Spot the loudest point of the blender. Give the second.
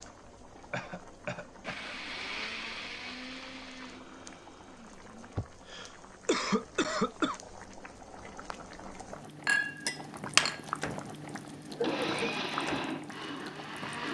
12 s.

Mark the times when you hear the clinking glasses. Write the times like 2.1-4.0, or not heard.
9.4-10.6.